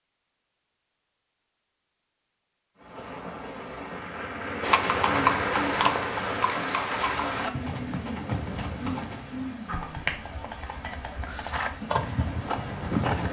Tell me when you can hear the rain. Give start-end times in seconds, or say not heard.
2.8-13.2.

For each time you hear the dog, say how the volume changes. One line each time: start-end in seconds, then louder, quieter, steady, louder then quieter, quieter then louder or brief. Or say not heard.
not heard.